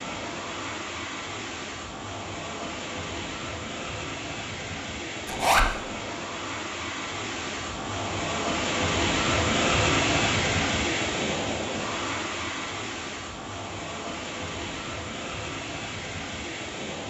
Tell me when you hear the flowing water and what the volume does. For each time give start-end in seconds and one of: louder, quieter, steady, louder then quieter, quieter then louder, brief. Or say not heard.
0.0-17.0 louder then quieter.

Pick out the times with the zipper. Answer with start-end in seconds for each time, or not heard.
5.2-5.7.